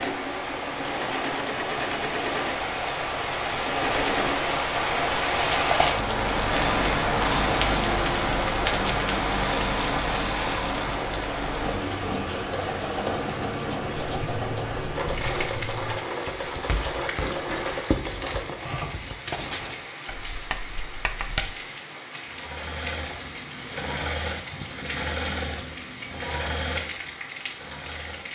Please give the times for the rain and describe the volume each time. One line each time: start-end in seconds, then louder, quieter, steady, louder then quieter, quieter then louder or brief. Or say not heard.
0.0-28.3 quieter.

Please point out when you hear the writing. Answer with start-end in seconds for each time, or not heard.
14.1-21.6.